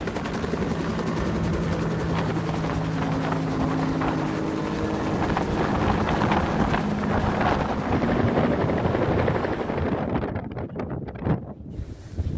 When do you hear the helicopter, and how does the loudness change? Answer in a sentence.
The helicopter can be heard from 0.0 to 10.1 s, at a steady volume.